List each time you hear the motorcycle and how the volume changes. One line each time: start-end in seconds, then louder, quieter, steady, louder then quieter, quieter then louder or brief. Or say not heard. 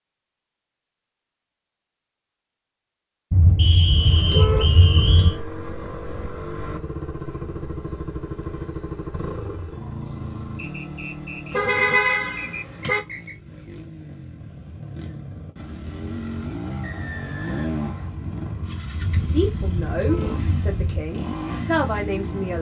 3.9-22.5 quieter then louder.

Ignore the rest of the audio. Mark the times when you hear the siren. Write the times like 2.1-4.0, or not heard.
not heard.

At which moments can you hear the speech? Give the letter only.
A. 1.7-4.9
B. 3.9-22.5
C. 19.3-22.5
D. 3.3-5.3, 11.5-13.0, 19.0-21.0
C.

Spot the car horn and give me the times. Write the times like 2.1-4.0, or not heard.
3.3-5.3, 11.5-13.0, 19.0-21.0.